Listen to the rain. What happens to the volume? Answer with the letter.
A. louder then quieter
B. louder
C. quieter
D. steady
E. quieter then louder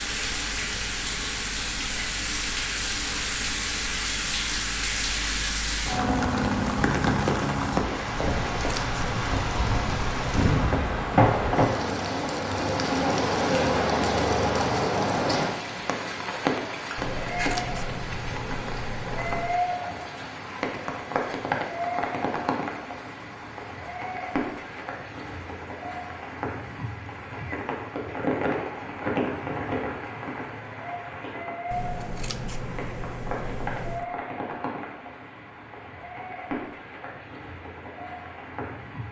C.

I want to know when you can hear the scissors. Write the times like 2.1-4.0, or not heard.
8.2-10.5, 16.9-19.6, 31.7-34.0.